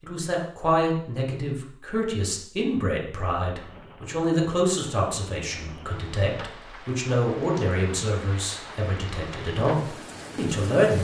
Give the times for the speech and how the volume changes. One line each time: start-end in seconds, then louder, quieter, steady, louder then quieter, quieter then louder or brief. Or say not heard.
0.0-10.9 steady.